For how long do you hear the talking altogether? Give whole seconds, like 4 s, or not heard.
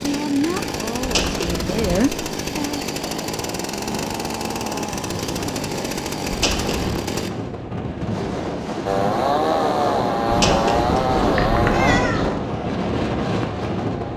3 s.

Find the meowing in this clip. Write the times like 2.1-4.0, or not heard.
1.0-2.0, 6.3-7.0, 10.2-12.3.